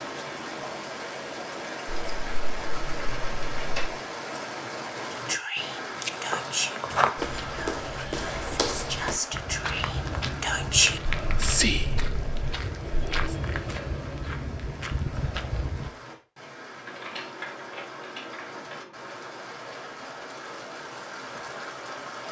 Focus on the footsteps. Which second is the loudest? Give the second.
7 s.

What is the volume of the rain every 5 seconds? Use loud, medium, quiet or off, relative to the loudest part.
loud, loud, medium, medium, loud.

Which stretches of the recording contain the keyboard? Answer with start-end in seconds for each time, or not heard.
1.9-3.9, 16.9-19.4.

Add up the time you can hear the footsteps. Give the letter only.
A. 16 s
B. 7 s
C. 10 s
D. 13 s
C.